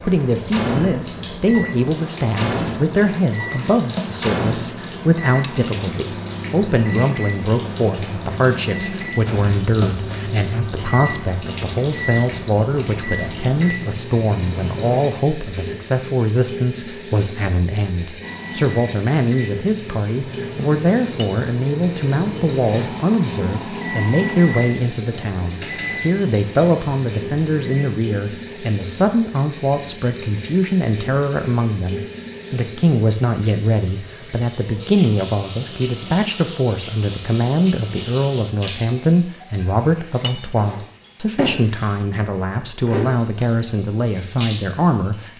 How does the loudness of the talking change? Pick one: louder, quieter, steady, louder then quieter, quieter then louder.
steady.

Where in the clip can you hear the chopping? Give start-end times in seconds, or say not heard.
not heard.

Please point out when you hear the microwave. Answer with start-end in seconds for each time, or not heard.
0.0-15.1, 18.2-27.9.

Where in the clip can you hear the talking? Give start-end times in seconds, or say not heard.
0.0-45.3.